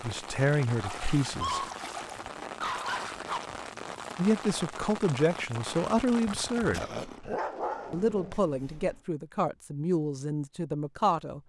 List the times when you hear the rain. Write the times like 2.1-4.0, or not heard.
0.0-8.3.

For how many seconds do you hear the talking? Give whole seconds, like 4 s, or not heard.
8 s.